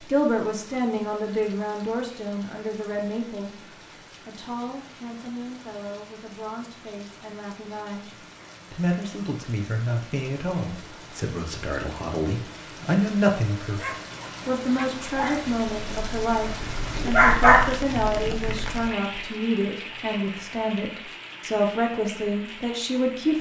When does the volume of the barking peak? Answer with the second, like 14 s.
17 s.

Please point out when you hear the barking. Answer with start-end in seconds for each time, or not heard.
13.8-18.9.